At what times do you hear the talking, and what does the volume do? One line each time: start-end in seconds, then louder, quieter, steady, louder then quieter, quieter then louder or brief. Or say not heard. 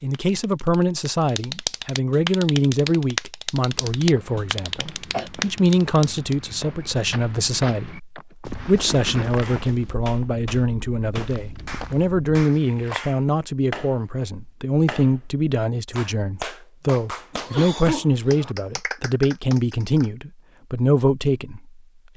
0.0-22.1 steady.